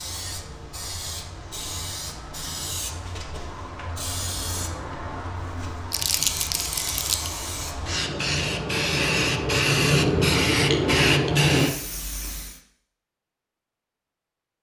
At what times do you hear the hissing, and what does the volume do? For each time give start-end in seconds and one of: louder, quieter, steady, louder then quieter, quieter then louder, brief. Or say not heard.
0.0-12.6 louder.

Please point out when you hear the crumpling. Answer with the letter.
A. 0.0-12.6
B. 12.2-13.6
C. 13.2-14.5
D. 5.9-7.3
D.